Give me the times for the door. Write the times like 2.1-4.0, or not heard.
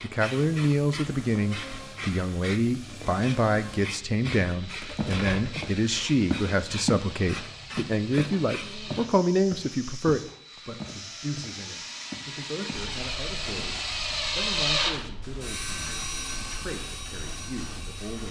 4.8-5.7.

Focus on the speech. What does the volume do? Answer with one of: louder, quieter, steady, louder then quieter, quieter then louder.
quieter.